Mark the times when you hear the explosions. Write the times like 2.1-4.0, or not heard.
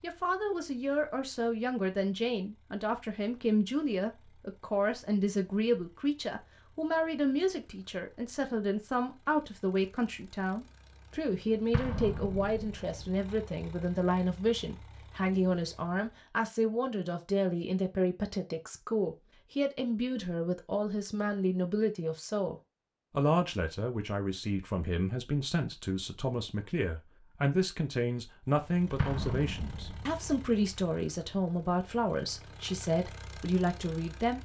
11.7-13.1, 28.9-30.4.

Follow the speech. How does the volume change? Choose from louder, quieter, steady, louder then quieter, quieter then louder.
steady.